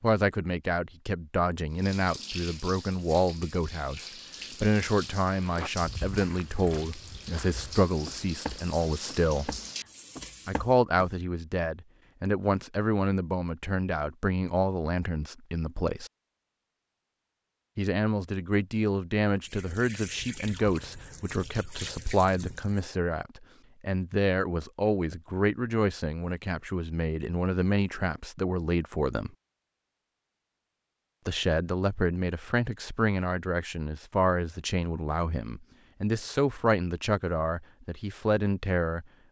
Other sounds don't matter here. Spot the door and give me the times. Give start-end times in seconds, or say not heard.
not heard.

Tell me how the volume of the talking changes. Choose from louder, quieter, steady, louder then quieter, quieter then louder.
steady.